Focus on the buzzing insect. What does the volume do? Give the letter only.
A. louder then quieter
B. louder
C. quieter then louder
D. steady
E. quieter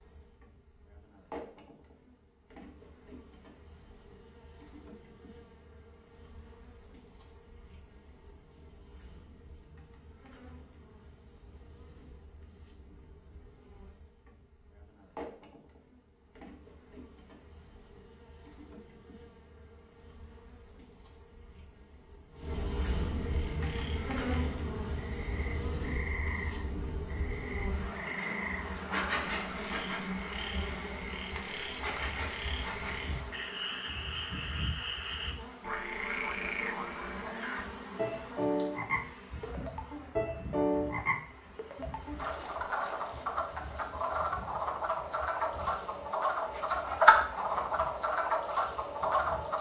A.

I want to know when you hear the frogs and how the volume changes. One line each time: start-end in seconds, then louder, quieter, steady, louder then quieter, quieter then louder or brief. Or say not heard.
23.3-49.5 louder.